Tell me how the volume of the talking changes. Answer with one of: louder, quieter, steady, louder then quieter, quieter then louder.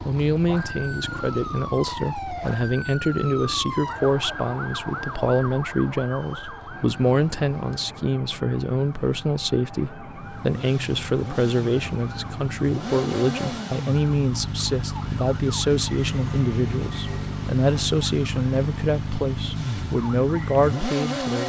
steady.